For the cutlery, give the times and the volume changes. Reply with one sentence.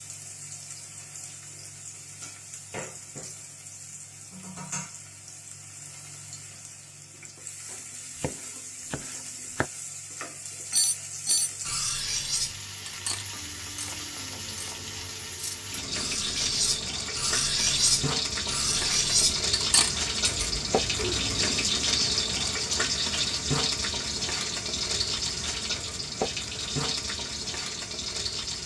You can hear the cutlery from 10.7 to 21.4 s, getting quieter then louder.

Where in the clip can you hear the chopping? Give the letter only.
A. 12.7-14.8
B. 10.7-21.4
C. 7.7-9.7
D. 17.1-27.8
C.